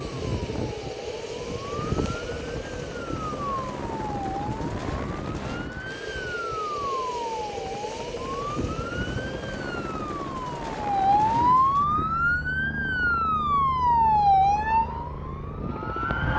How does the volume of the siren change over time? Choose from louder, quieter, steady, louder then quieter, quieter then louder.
louder.